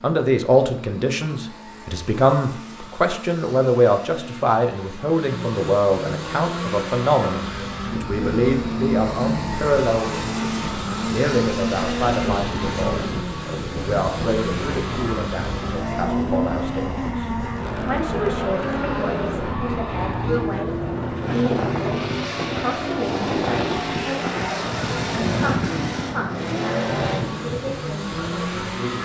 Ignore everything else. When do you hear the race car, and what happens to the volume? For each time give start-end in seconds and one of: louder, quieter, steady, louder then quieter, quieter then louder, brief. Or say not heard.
0.0-29.0 louder.